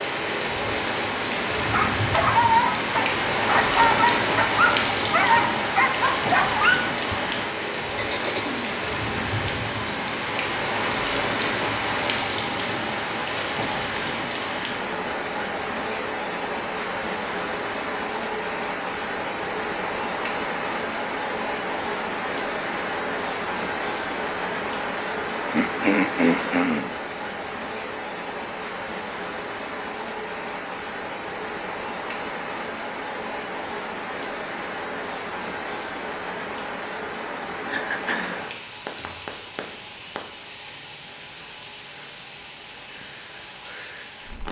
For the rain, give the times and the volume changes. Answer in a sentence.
The rain can be heard from 0.0 to 44.4 s, getting quieter.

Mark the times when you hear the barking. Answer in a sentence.
The barking can be heard from 1.6 to 6.8 s.